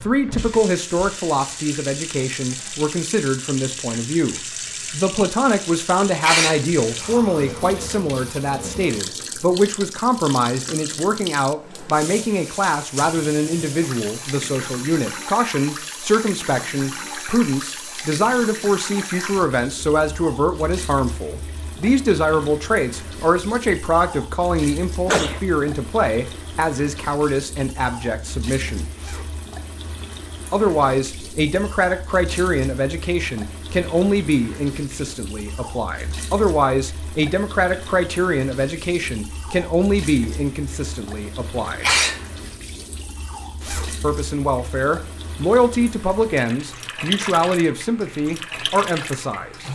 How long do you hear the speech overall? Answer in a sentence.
The speech can be heard for 46 seconds in total.